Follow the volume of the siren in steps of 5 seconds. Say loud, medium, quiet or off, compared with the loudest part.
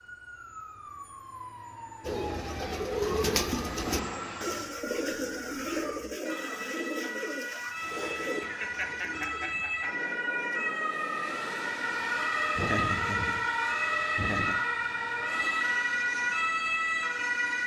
quiet, medium, loud, loud.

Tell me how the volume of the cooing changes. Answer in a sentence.
The volume of the cooing goes down.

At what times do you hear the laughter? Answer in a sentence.
You can hear the laughter from 3.5 to 4.2 s, from 8.4 to 10.1 s and from 12.6 to 14.6 s.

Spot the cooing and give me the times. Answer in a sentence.
You can hear the cooing from 2.0 to 9.6 s.